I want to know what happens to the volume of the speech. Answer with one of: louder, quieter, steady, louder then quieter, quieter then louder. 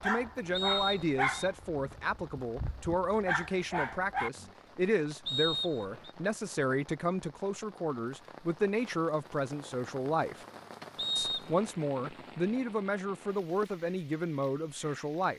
steady.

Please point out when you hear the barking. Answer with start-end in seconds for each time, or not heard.
0.0-4.5.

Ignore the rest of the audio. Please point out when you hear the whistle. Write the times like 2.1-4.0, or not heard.
0.5-1.5, 5.2-6.1, 10.9-11.5.